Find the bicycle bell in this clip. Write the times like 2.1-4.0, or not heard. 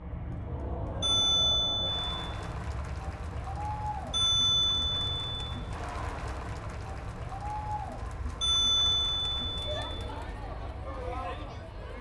1.0-2.2, 4.1-5.5, 8.4-9.8.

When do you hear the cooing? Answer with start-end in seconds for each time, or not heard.
not heard.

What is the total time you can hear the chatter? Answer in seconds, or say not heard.
12 s.